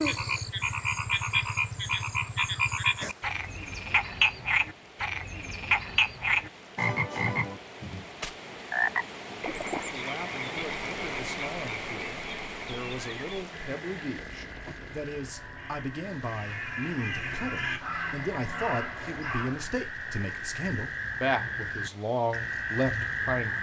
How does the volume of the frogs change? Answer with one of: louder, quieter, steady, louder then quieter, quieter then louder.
quieter then louder.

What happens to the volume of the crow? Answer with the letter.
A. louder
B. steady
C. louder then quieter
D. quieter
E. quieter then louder
A.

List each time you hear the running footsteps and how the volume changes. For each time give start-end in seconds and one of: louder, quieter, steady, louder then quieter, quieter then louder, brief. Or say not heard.
not heard.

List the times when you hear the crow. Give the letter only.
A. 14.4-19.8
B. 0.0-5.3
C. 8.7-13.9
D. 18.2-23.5
A.